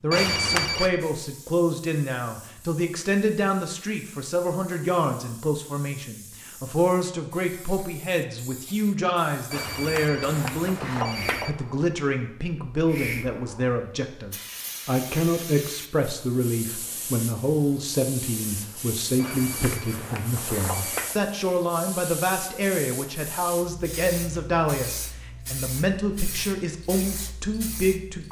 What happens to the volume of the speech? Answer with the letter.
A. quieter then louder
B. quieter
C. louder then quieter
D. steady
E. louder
D.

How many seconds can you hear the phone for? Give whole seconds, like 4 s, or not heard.
5 s.